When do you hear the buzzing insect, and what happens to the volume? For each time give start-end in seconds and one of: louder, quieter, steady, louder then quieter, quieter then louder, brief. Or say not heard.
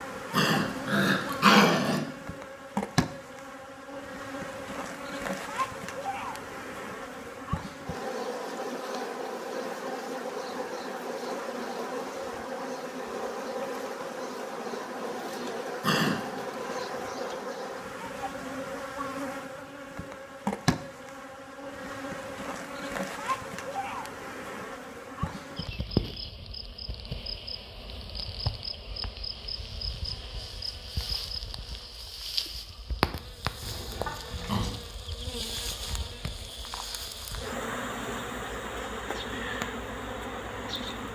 0.0-41.1 steady.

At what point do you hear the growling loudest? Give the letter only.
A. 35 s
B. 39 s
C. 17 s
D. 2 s
D.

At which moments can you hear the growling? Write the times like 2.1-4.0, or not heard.
0.3-2.0, 15.8-16.4, 33.6-34.7.